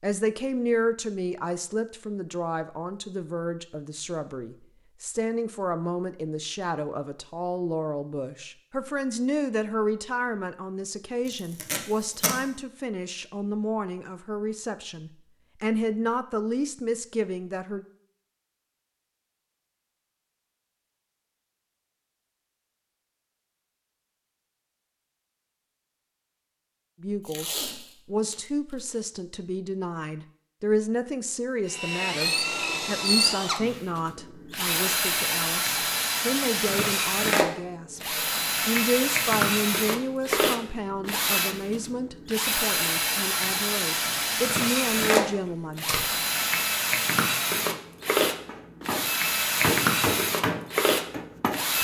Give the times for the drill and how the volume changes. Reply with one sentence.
You can hear the drill from 31.6 to 51.7 s, at a steady volume.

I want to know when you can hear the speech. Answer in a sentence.
You can hear the speech from 0.0 to 17.9 s and from 27.0 to 46.0 s.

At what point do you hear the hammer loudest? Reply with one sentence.
The volume of the hammer peaks at 50 seconds.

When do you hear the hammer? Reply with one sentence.
The hammer can be heard from 48.3 to 51.7 s.